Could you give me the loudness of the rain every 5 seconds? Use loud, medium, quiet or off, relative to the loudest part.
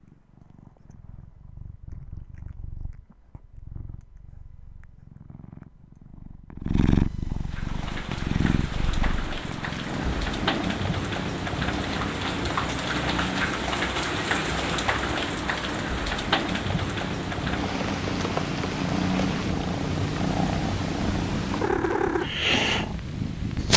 off, medium, loud, loud, medium.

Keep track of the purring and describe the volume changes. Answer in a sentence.
The loudness of the purring goes up.